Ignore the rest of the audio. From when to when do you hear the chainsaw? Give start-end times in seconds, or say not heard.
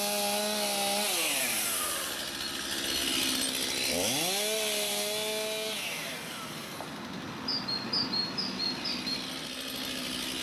0.0-10.3.